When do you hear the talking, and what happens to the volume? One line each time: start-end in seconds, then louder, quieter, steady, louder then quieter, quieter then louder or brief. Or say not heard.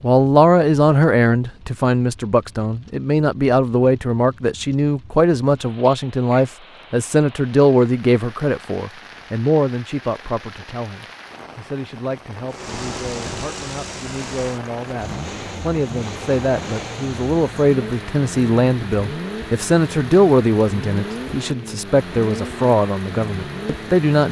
0.0-24.2 quieter then louder.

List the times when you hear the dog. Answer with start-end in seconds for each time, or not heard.
not heard.